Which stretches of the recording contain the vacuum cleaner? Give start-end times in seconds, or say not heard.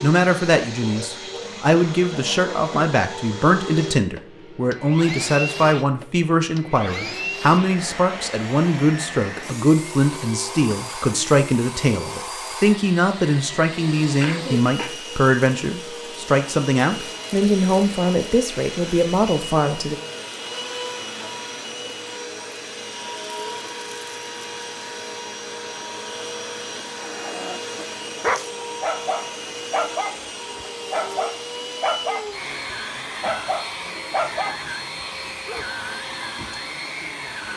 0.0-37.5.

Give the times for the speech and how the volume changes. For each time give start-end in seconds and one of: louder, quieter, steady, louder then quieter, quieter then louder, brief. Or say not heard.
0.0-19.9 steady.